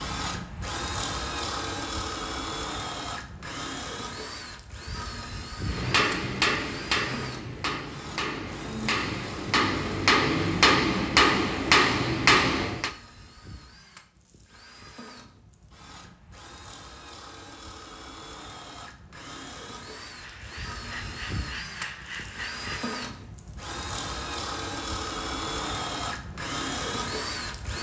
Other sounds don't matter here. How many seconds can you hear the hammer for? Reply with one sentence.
The hammer can be heard for 7 seconds in total.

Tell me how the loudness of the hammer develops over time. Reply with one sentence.
The volume of the hammer goes down, then up.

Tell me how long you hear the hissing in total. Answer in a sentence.
You can hear the hissing for 3 seconds altogether.